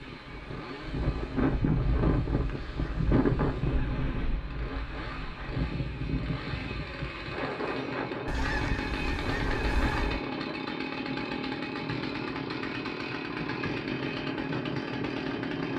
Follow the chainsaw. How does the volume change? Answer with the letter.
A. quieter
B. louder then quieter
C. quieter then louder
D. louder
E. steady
D.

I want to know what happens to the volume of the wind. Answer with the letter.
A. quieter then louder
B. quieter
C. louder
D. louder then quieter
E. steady
B.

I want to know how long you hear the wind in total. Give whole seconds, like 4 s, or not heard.
16 s.